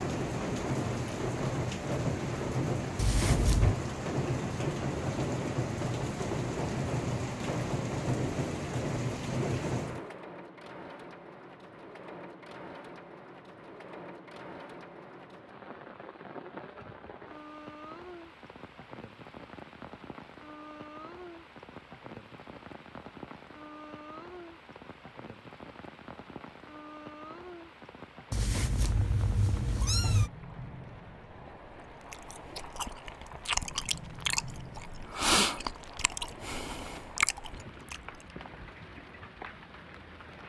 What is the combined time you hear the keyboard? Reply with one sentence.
You can't hear the keyboard here.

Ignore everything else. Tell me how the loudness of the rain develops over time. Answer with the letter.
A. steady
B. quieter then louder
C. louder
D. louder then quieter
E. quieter
E.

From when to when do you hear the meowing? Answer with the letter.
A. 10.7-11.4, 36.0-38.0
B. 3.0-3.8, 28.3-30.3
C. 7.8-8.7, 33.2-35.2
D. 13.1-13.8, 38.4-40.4
B.